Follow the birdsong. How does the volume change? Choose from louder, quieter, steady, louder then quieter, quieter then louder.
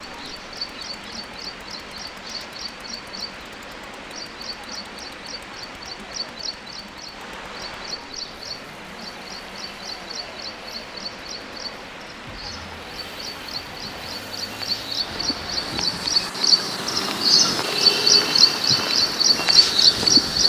louder.